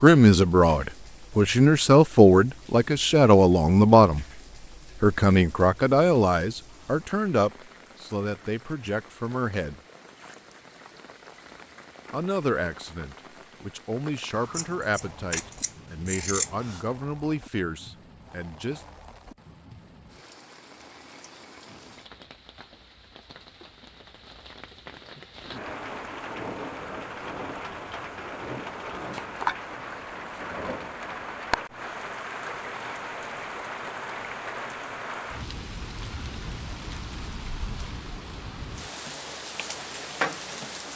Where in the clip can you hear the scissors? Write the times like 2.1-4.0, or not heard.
14.3-16.9.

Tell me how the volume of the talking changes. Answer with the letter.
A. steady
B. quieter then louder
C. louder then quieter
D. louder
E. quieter
E.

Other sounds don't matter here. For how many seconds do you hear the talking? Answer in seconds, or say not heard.
16 s.